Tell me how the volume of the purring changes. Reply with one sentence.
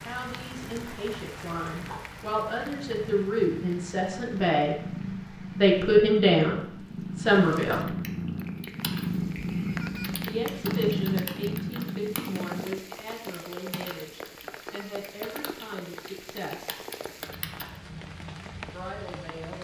The loudness of the purring goes up.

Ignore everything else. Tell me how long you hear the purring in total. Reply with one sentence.
The purring can be heard for 13 seconds in total.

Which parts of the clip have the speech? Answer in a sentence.
The speech can be heard from 0.0 to 4.8 s, from 5.5 to 8.0 s, from 10.2 to 16.8 s and from 18.7 to 19.5 s.